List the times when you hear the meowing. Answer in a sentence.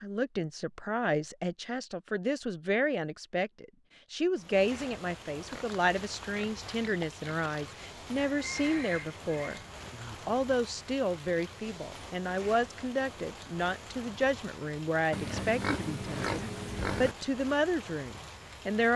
The meowing can't be heard in this clip.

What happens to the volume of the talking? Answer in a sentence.
The loudness of the talking stays about the same.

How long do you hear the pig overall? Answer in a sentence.
You can hear the pig for 4 seconds altogether.